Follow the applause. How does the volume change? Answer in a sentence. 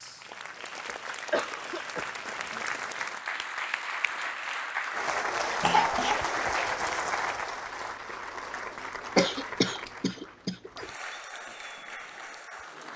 The volume of the applause goes up, then down.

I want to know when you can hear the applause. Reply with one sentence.
The applause can be heard from 0.0 to 12.9 s.